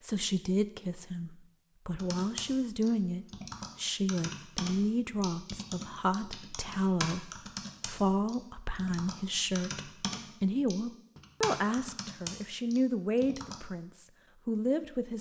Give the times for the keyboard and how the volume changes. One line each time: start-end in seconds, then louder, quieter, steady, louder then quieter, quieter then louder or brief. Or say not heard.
1.9-13.6 steady.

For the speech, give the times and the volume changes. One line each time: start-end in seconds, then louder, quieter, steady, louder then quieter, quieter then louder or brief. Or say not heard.
0.0-15.1 steady.